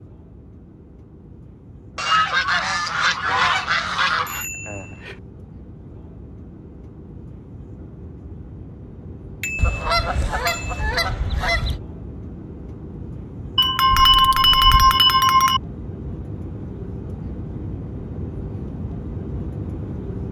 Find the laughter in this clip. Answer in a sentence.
You can't hear the laughter here.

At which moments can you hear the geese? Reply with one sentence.
The geese can be heard from 1.9 to 4.5 s, from 9.6 to 11.8 s and from 13.9 to 15.1 s.